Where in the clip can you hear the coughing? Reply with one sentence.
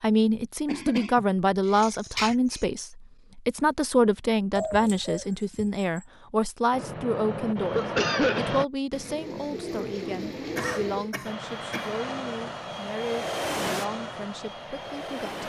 The coughing can be heard from 0.7 to 2.6 s, from 7.7 to 8.5 s and from 10.6 to 11.9 s.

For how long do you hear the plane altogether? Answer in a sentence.
The plane can be heard for 6 seconds in total.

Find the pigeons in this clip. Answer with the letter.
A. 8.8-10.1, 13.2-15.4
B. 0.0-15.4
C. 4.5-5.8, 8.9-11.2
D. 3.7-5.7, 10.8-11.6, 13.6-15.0
C.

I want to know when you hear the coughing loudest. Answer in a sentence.
The volume of the coughing peaks at 8 seconds.